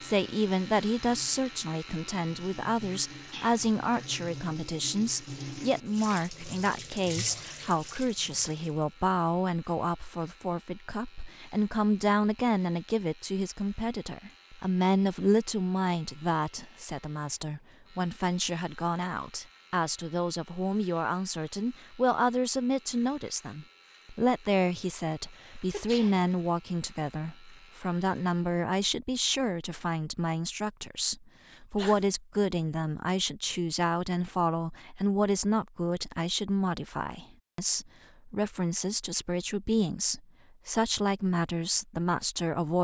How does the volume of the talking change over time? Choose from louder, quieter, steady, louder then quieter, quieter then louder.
steady.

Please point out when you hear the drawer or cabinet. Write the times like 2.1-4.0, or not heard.
not heard.